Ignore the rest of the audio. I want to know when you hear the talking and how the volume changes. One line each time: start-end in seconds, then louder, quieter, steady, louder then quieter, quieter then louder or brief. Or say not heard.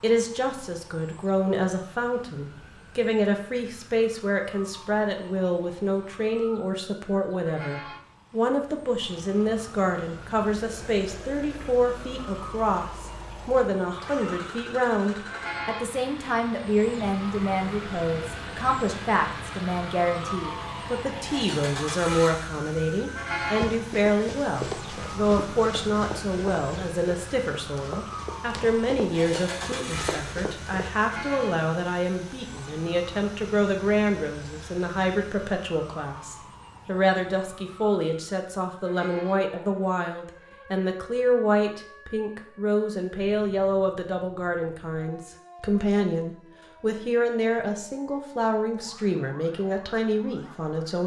0.0-51.0 steady.